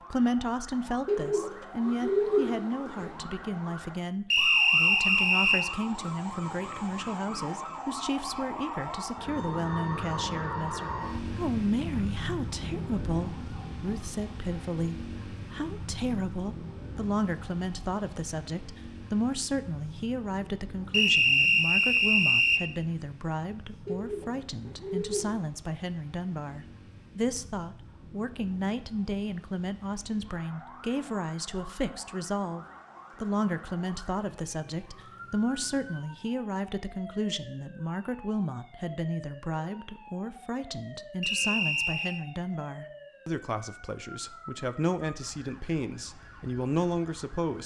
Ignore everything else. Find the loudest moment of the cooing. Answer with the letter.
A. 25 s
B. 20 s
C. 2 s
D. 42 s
C.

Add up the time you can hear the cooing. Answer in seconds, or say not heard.
4 s.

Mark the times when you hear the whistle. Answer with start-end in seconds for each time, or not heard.
4.3-5.7, 20.9-22.6, 41.2-42.2.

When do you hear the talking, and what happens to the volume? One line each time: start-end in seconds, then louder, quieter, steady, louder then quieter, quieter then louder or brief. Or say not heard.
0.1-47.6 steady.